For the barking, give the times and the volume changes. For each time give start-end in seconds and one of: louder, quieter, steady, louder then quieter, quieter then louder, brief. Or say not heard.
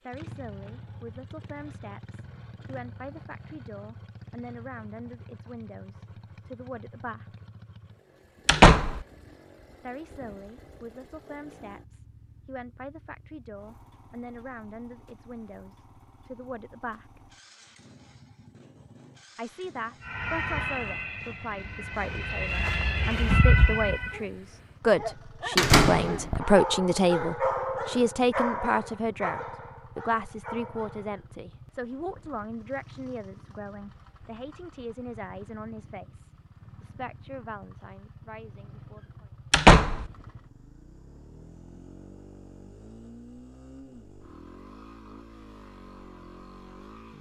24.1-31.2 louder then quieter.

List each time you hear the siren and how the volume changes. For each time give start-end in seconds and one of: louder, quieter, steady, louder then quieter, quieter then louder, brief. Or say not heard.
20.1-24.1 quieter then louder.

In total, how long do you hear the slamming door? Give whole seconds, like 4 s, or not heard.
2 s.